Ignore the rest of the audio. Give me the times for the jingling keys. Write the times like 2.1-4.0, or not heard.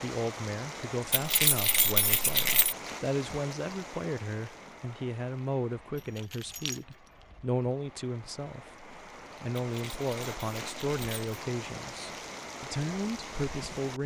1.1-2.8, 6.0-6.8, 9.6-11.3.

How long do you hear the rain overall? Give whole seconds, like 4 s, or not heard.
14 s.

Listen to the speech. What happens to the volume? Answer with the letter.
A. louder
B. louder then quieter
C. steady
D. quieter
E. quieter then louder
C.